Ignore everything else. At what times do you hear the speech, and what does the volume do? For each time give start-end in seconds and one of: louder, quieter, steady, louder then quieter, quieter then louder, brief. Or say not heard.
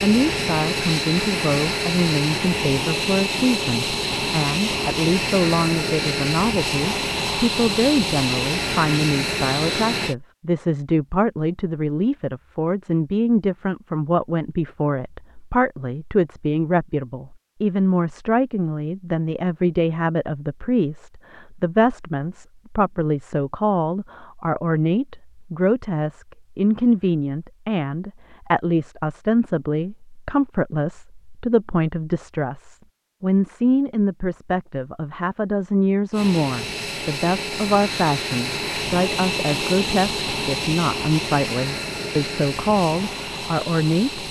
0.0-44.2 steady.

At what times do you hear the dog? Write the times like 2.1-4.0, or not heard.
not heard.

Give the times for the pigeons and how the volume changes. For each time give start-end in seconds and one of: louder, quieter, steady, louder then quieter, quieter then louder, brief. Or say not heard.
not heard.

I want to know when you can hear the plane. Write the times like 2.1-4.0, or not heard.
0.0-10.2, 36.1-44.2.